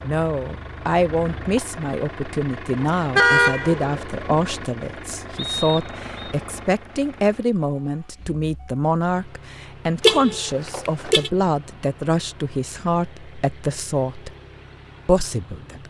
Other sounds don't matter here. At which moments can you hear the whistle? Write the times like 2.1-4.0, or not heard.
5.3-6.3.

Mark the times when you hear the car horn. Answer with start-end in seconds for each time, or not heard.
2.8-4.5, 10.0-11.3.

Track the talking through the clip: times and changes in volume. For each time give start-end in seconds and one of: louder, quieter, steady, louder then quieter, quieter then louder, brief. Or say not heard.
0.0-14.3 steady
15.1-15.8 brief.